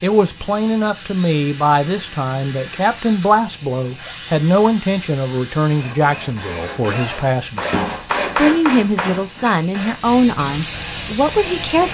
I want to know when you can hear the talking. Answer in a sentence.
You can hear the talking from 0.0 to 7.6 s and from 8.3 to 11.8 s.